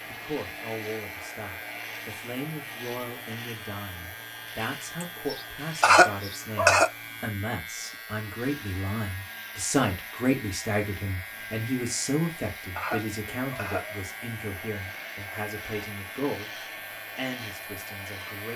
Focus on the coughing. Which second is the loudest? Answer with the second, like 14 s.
6 s.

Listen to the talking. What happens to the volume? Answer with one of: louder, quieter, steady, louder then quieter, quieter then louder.
louder then quieter.